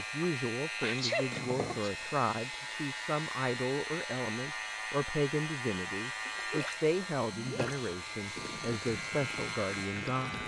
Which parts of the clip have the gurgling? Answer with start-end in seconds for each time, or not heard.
6.5-10.4.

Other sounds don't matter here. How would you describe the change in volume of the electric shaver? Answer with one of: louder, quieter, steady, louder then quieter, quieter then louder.
steady.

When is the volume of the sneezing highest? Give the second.
1 s.